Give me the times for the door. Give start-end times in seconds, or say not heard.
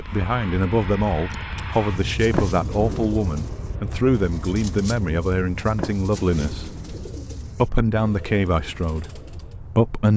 2.3-3.1, 5.8-7.2.